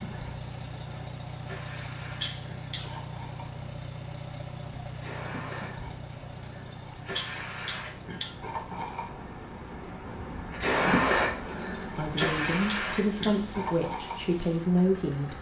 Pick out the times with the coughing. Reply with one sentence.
You can hear the coughing from 2.2 to 3.0 s, from 6.7 to 8.3 s and from 12.2 to 13.4 s.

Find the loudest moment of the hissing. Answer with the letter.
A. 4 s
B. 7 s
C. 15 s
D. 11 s
D.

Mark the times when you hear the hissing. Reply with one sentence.
The hissing can be heard from 0.0 to 15.3 s.